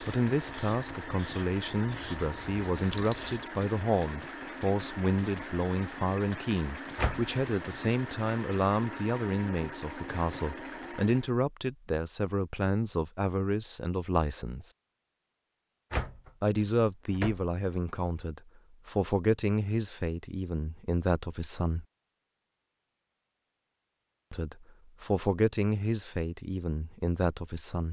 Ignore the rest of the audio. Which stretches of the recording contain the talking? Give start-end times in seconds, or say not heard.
0.0-14.7, 16.4-21.9, 24.3-27.8.